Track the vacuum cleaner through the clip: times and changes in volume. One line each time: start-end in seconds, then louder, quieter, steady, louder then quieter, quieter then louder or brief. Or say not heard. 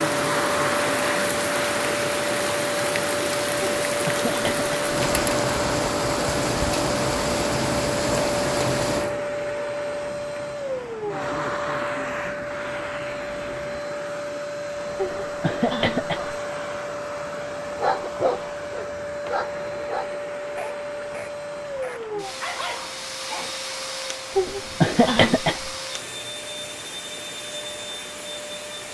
0.0-28.9 quieter.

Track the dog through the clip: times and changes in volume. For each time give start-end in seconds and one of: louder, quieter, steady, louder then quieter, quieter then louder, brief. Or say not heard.
17.8-23.5 quieter then louder.